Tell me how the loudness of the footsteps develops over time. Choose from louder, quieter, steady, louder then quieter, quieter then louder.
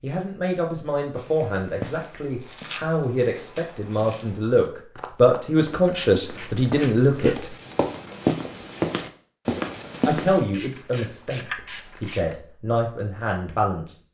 quieter then louder.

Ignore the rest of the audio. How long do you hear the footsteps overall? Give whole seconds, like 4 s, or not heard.
9 s.